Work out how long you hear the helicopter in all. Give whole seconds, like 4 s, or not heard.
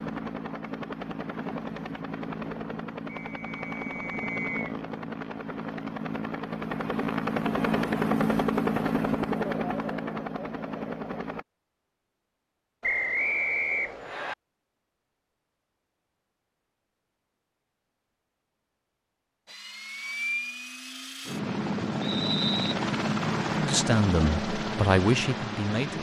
18 s.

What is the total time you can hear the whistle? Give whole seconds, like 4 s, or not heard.
4 s.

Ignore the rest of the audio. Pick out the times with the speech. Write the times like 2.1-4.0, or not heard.
23.5-25.9.